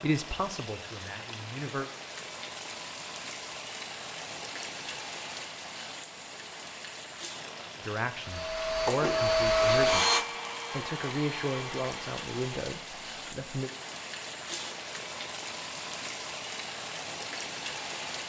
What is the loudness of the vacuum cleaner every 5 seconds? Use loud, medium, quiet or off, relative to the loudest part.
off, loud, medium, off.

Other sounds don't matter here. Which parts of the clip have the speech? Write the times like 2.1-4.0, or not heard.
0.0-1.9, 7.8-13.7.